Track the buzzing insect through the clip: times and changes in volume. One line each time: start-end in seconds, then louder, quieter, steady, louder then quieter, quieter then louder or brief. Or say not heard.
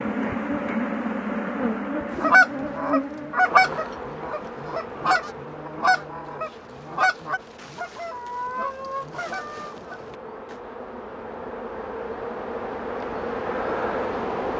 0.0-14.5 quieter then louder.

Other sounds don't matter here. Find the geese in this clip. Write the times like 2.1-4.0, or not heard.
2.2-10.6.